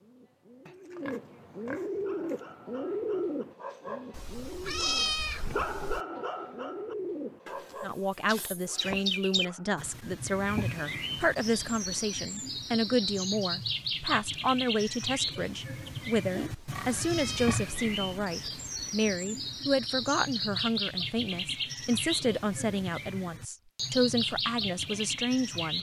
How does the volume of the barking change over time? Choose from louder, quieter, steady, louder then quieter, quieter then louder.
louder then quieter.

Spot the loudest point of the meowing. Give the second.
5 s.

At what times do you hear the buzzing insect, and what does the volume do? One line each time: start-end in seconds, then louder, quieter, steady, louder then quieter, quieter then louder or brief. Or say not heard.
not heard.